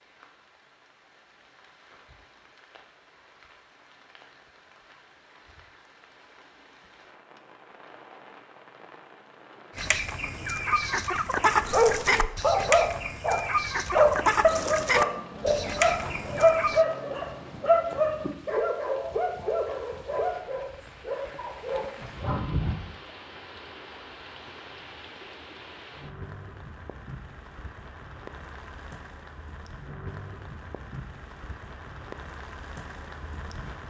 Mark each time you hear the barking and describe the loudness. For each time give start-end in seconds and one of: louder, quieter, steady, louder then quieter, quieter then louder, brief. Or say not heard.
11.7-22.8 quieter.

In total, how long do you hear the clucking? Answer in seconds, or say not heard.
7 s.